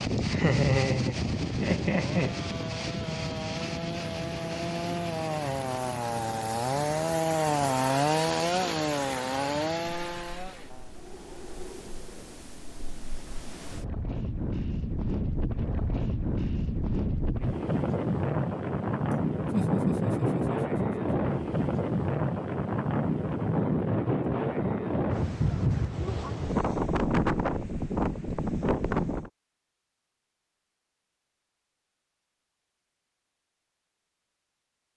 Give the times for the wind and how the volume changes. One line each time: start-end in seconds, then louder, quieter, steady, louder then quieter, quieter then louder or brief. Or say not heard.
0.0-29.3 quieter then louder.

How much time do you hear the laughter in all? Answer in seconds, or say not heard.
4 s.